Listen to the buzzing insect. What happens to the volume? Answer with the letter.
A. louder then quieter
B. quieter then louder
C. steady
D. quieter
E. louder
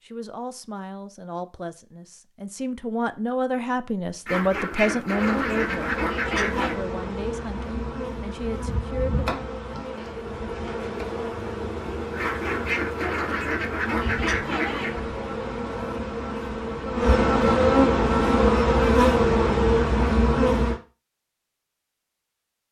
E.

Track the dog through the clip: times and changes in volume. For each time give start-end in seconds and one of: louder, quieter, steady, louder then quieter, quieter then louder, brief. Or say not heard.
not heard.